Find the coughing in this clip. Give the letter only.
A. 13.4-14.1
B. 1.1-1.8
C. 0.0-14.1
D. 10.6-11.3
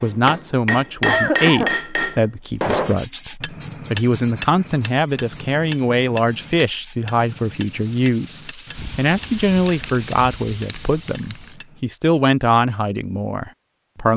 B.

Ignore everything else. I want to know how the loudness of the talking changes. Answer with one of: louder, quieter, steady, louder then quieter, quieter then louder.
steady.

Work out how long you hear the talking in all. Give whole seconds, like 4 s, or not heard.
14 s.